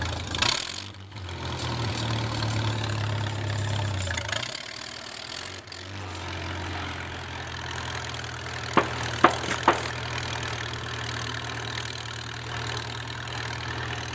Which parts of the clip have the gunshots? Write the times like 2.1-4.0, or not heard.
8.8-9.9.